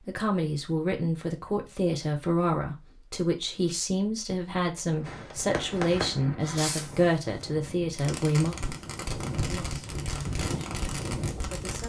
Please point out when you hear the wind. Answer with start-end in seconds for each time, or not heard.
4.8-11.8.